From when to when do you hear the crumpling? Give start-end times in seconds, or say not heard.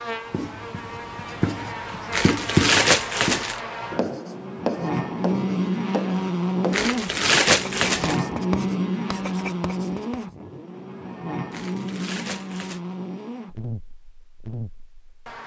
2.1-3.6, 6.7-8.2, 11.5-12.8.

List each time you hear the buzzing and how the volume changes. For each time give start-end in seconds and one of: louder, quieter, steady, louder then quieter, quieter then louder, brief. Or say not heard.
0.0-15.4 louder then quieter.